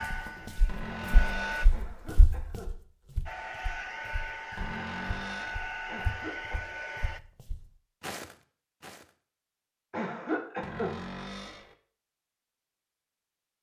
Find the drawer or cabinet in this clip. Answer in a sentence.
You can hear the drawer or cabinet from 0.7 to 1.8 s, from 4.5 to 5.7 s and from 10.6 to 11.8 s.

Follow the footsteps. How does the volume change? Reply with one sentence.
The loudness of the footsteps goes down, then up.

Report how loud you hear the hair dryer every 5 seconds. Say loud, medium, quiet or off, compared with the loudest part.
loud, loud, off.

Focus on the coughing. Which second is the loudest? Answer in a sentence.
The volume of the coughing peaks at 10 seconds.